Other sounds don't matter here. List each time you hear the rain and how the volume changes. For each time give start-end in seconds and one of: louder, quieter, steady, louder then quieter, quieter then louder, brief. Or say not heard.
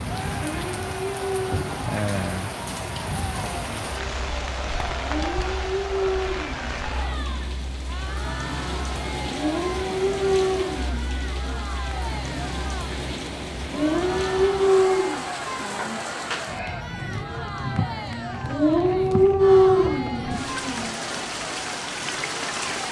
0.0-22.8 steady.